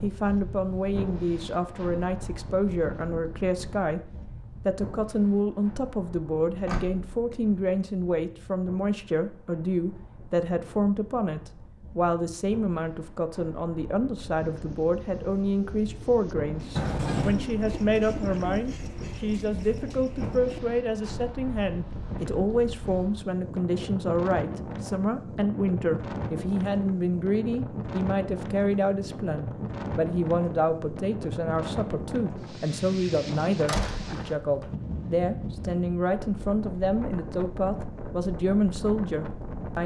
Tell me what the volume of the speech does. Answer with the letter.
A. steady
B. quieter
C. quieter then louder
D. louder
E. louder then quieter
A.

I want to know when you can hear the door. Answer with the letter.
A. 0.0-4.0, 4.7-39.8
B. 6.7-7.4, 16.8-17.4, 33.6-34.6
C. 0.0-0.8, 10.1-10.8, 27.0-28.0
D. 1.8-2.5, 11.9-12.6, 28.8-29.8
B.